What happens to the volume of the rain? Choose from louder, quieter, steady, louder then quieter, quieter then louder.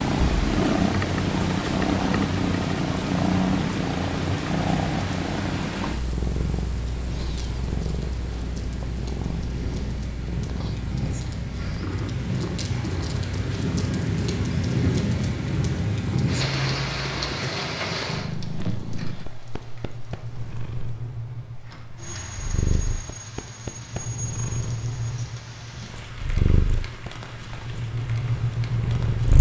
louder then quieter.